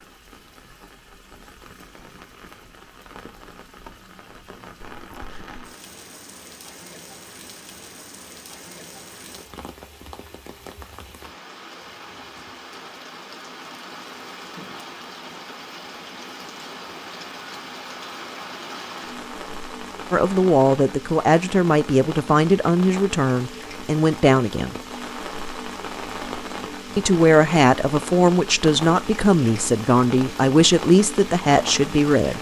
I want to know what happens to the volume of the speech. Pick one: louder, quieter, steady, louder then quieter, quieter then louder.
steady.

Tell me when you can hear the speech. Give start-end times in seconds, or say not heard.
20.1-24.8, 26.9-32.3.